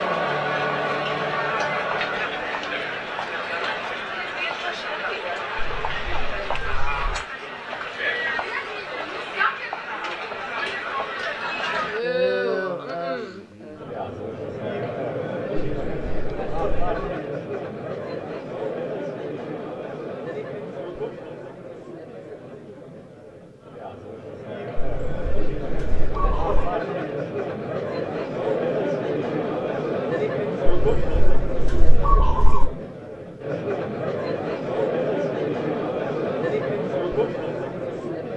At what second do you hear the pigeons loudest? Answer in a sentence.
The loudest moment of the pigeons is at 32 seconds.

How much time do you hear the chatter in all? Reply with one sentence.
You can hear the chatter for 38 seconds altogether.